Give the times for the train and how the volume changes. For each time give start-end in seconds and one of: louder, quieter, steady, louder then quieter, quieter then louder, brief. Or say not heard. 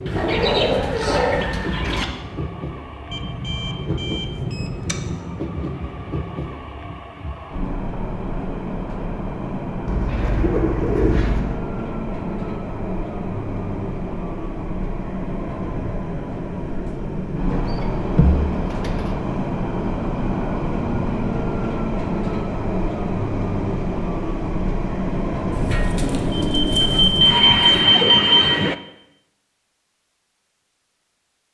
0.0-28.8 louder.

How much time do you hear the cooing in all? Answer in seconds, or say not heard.
8 s.